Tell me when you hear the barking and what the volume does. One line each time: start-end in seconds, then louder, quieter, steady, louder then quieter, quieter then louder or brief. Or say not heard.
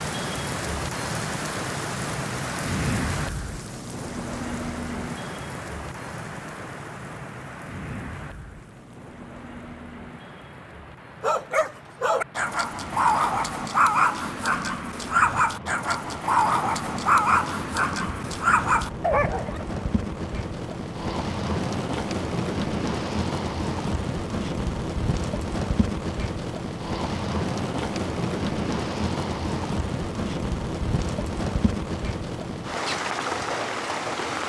11.2-19.6 steady.